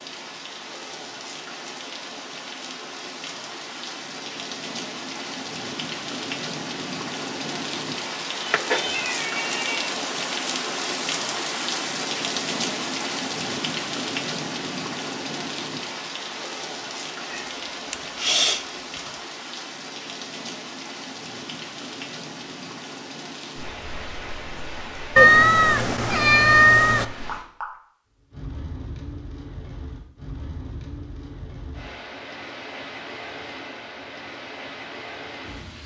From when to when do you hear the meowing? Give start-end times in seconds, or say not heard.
8.4-9.9, 17.3-19.1, 25.1-27.1.